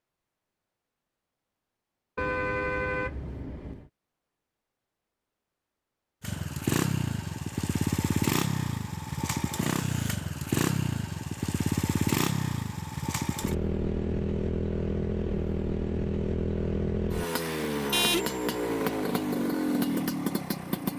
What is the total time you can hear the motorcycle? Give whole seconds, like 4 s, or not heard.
15 s.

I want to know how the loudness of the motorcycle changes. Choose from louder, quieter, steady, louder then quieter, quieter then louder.
steady.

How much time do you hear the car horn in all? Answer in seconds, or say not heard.
2 s.